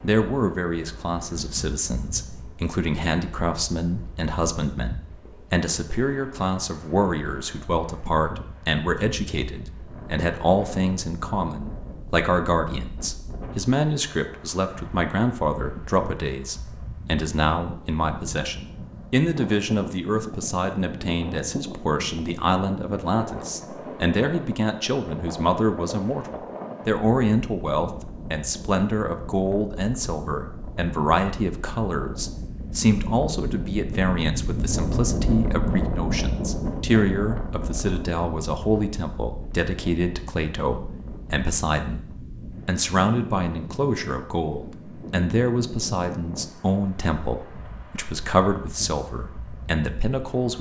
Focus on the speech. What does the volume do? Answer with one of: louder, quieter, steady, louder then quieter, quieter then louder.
steady.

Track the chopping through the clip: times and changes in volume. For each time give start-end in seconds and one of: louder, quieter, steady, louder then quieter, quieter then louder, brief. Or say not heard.
not heard.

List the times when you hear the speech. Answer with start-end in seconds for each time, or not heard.
0.0-50.5.